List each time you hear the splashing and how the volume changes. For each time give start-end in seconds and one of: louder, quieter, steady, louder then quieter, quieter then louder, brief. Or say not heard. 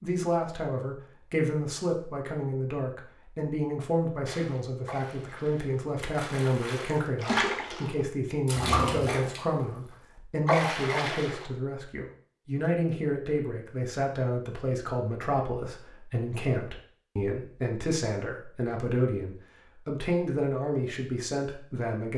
4.2-11.4 louder.